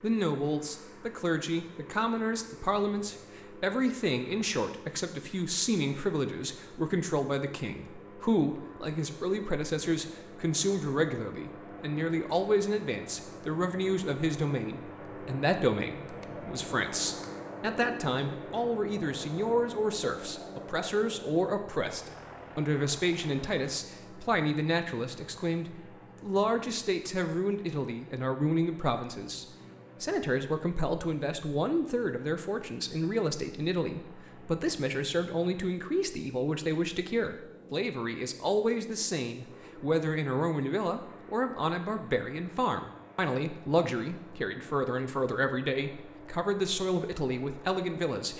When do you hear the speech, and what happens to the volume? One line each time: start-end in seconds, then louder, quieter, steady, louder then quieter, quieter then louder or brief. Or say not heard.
0.0-48.3 steady.